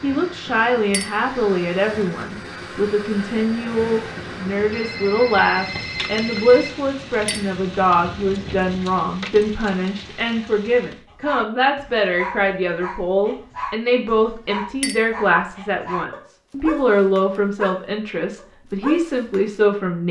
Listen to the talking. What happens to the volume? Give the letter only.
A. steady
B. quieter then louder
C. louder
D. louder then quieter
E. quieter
A.